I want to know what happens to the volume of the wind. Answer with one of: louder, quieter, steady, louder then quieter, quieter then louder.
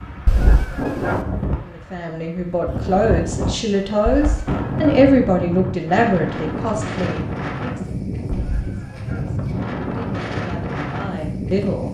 steady.